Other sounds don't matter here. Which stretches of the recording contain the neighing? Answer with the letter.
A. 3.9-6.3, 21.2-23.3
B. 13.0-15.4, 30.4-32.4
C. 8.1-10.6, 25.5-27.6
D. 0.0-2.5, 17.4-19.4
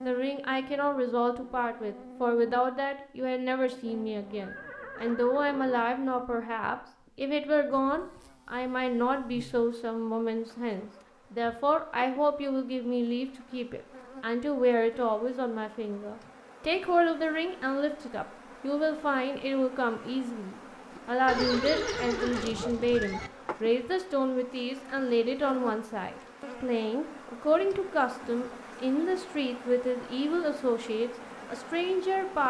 A.